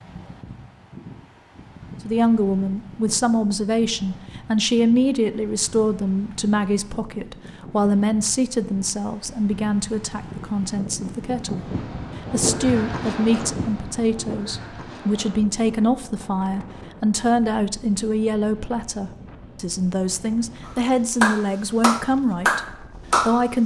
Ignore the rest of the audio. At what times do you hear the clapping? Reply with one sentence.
You can hear the clapping from 20.6 to 23.4 s.